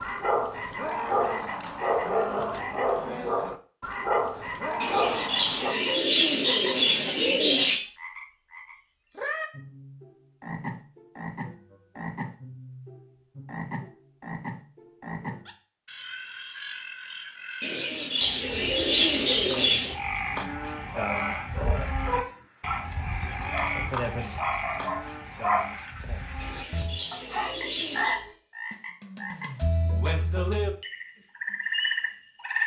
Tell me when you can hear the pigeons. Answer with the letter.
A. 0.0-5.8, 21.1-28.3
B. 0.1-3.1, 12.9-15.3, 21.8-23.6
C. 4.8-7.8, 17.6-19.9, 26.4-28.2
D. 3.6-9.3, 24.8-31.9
C.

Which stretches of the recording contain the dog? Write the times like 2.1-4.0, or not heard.
0.0-5.8, 21.1-28.3.